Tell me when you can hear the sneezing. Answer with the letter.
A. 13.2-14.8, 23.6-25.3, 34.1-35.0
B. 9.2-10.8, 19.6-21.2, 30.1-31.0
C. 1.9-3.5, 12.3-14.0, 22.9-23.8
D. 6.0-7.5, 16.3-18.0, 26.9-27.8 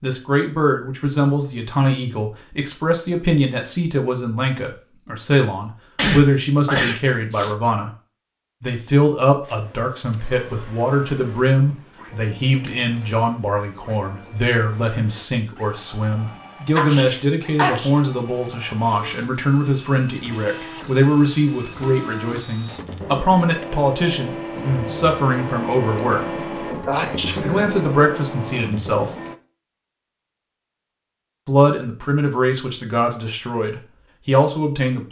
D.